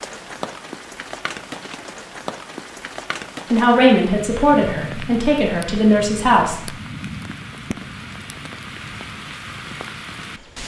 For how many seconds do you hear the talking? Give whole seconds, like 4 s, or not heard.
3 s.